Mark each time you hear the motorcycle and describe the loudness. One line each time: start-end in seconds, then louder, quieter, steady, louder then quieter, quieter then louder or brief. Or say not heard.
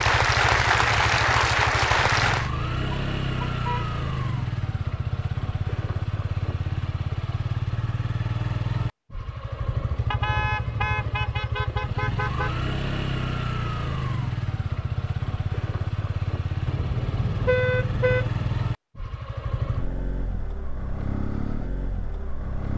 0.0-22.7 steady.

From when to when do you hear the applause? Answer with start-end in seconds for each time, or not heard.
0.0-2.5.